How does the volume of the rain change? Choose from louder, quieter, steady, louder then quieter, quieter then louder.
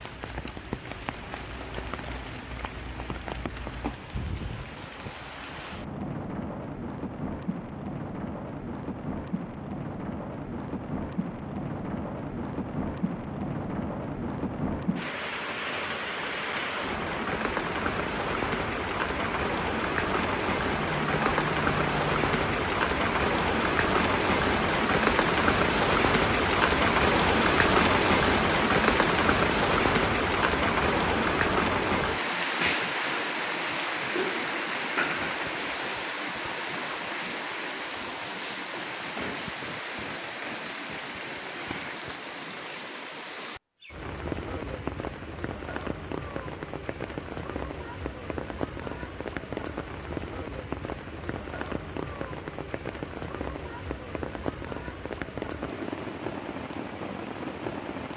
louder then quieter.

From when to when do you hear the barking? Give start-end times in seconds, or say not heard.
20.7-22.7.